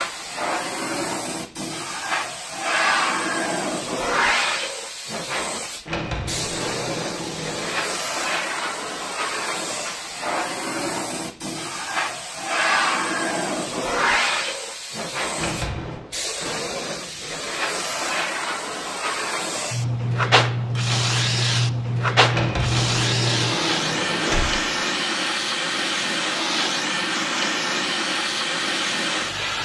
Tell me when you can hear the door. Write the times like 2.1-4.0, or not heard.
5.8-7.8, 15.3-16.0, 22.3-24.6.